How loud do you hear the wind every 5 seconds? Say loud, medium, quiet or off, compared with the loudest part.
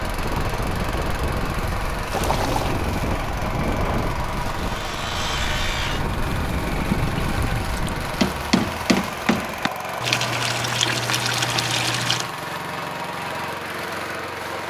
loud, loud, off.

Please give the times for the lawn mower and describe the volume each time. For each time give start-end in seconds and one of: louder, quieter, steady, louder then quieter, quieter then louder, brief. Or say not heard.
0.0-14.6 steady.